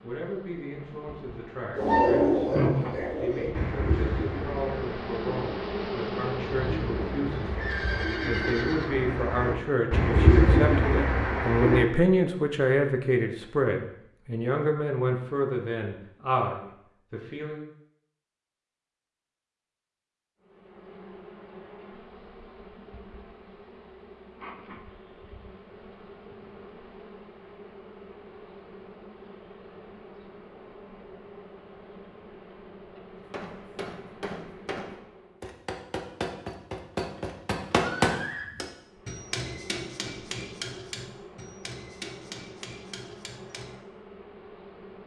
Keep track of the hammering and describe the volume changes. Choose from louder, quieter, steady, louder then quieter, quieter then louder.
louder then quieter.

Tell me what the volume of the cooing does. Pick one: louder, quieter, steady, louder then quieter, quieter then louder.
quieter then louder.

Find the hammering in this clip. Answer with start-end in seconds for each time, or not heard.
33.1-43.7.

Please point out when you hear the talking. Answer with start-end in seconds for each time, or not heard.
0.0-17.6.